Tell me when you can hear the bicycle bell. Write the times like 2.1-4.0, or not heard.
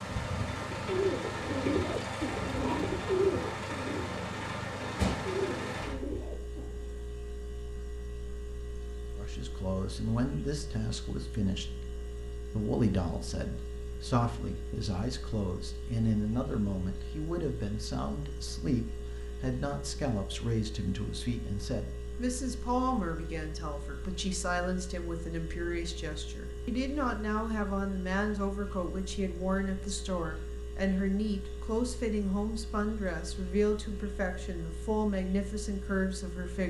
not heard.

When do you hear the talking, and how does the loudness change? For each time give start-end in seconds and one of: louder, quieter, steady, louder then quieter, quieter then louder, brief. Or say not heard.
9.2-36.6 steady.